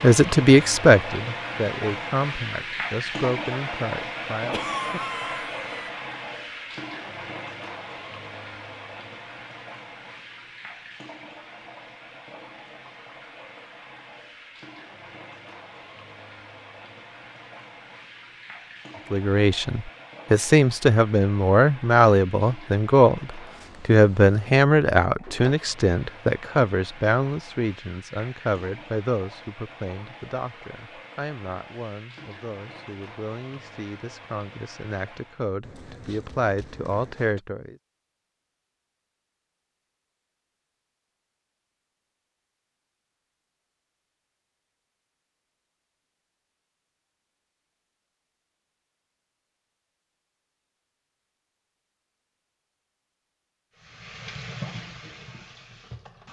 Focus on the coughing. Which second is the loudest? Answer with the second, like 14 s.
5 s.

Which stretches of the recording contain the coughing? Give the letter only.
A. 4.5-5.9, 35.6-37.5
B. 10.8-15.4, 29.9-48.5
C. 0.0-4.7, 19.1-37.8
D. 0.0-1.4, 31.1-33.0
A.